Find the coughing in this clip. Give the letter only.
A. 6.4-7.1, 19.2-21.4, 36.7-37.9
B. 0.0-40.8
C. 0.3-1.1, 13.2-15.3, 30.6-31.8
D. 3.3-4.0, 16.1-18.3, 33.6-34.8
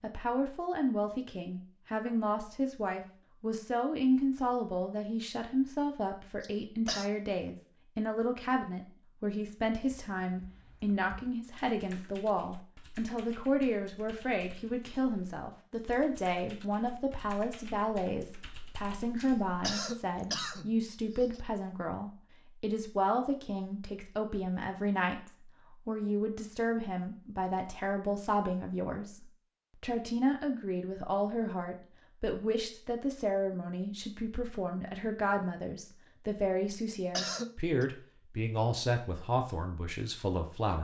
A.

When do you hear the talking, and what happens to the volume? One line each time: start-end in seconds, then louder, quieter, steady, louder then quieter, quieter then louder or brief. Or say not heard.
0.0-40.8 steady.